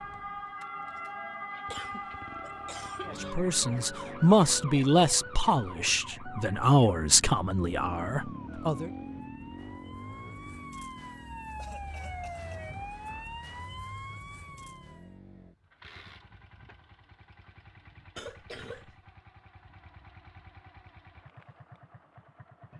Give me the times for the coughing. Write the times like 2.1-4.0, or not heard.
1.7-3.4, 11.6-12.6, 18.1-18.9.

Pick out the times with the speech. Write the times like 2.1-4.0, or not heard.
3.1-8.9.